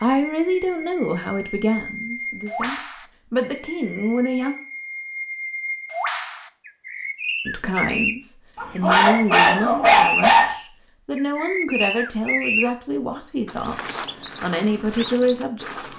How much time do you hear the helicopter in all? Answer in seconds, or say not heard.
not heard.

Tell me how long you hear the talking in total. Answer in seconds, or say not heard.
13 s.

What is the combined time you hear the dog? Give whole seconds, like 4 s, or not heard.
2 s.